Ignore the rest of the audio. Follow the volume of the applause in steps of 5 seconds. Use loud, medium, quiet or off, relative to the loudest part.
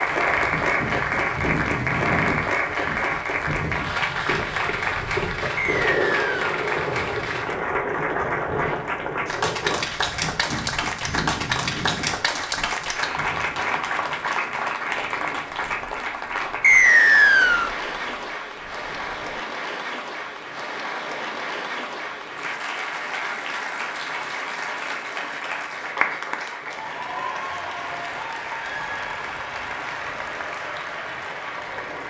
loud, loud, loud, medium, medium, medium, medium.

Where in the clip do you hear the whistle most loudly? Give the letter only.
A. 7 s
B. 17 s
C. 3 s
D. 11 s
B.